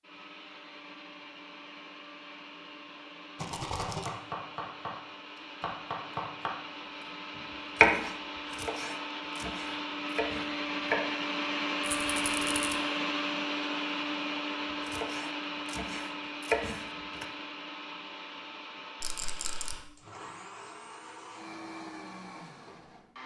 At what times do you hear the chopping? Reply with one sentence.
The chopping can be heard from 3.9 to 11.2 s and from 14.8 to 17.2 s.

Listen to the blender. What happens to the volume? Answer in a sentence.
The volume of the blender goes up, then down.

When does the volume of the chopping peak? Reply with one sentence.
The volume of the chopping peaks at 8 seconds.